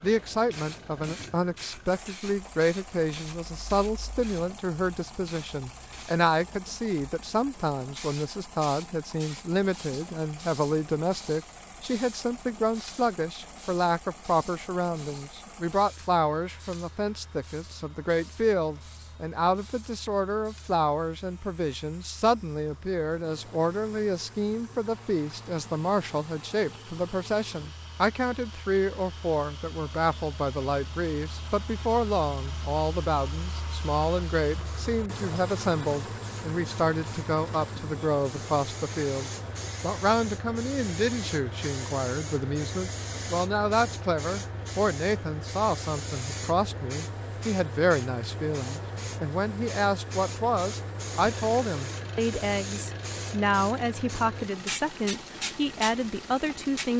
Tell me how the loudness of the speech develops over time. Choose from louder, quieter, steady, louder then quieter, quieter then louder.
steady.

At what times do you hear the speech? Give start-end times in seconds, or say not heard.
0.0-56.9.